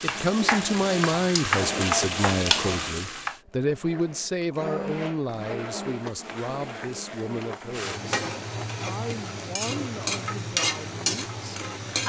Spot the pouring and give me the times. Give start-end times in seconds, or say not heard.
not heard.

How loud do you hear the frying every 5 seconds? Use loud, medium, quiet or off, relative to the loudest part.
loud, medium, loud.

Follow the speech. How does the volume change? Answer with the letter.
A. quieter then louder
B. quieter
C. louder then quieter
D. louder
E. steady
B.